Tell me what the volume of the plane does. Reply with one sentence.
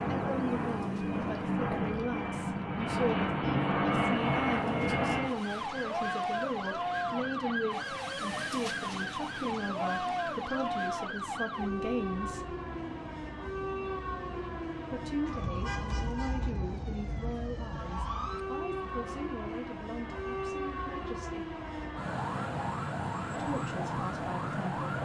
The volume of the plane goes down.